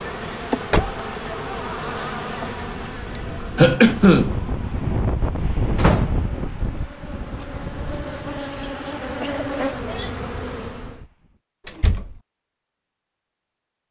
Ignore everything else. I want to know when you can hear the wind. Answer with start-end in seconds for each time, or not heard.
0.0-11.4.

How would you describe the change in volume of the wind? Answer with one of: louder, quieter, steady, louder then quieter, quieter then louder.
louder then quieter.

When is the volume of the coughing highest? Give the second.
4 s.